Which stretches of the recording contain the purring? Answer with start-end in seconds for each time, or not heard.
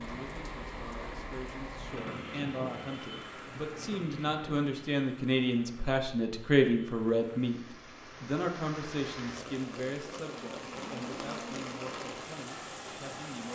not heard.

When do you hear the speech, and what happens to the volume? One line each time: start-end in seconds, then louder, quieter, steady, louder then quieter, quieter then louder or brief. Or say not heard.
0.0-13.5 louder then quieter.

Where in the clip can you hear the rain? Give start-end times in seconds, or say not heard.
0.0-13.5.